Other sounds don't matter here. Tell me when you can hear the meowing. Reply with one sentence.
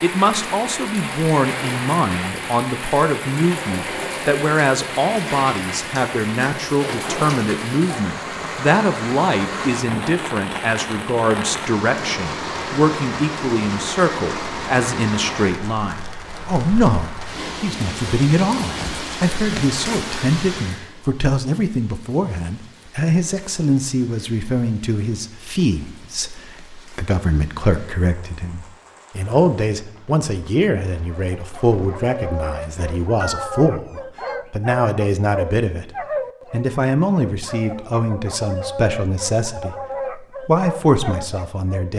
The meowing can be heard from 33.2 to 34.5 s.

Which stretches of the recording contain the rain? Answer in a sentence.
The rain can be heard from 0.0 to 33.1 s.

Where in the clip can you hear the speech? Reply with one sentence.
The speech can be heard from 0.0 to 41.9 s.